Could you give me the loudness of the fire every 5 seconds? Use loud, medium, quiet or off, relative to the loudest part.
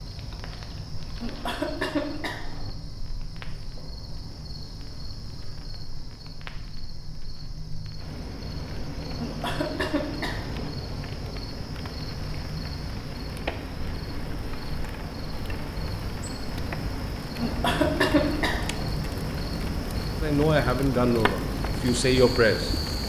quiet, medium, medium, loud, loud.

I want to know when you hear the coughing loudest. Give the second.
18 s.